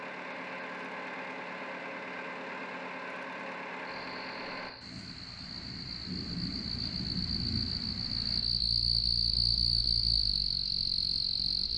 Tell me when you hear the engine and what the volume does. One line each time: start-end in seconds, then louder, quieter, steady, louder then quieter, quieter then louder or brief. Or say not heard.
0.0-4.7 steady.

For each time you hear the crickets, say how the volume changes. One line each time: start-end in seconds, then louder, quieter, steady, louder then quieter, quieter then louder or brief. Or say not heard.
3.8-11.7 louder.